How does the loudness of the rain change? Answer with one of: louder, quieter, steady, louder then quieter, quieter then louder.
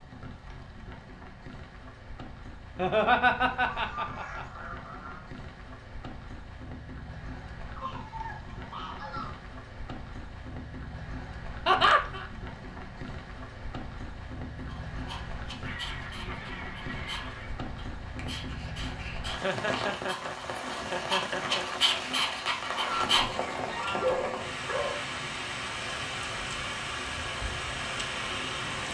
louder.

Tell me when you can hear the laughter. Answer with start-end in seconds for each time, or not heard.
2.8-4.7, 11.7-12.2, 19.3-21.6.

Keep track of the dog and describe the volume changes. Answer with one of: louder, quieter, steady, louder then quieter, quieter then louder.
louder.